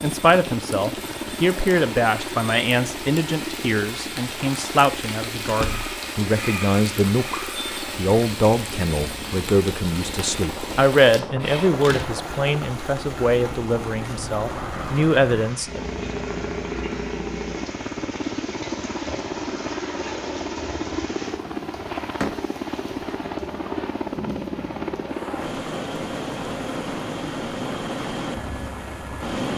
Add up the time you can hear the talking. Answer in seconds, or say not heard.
16 s.